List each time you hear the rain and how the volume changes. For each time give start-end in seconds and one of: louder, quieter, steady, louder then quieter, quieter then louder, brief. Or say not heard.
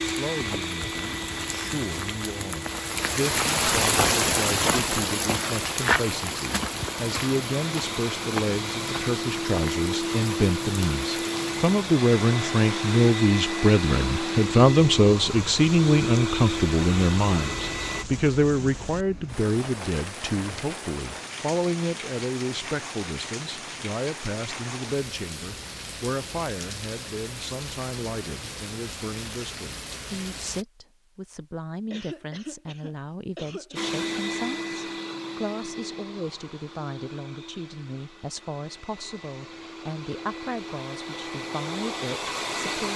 0.2-30.6 quieter.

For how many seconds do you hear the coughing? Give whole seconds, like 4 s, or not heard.
2 s.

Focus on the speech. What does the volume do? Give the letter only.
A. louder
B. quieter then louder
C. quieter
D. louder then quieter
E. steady
D.